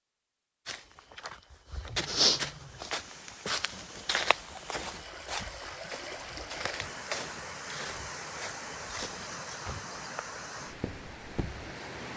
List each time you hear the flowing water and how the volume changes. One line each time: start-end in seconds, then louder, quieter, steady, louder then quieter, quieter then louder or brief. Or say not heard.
2.5-12.1 louder.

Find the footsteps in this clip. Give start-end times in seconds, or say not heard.
0.7-11.8.